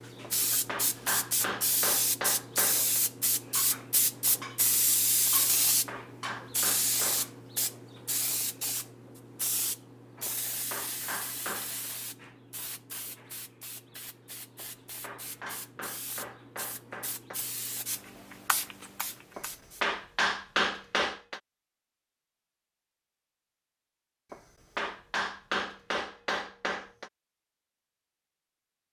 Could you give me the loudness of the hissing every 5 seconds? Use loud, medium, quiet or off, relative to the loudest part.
loud, loud, medium, medium, off, off.